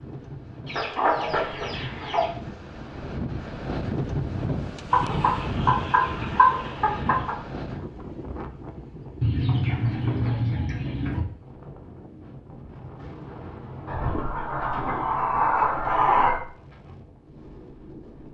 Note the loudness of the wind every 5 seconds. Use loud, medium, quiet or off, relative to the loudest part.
loud, loud, medium, quiet.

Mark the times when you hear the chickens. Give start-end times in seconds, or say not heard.
0.7-2.3, 4.9-7.3, 9.2-11.2, 13.8-16.4.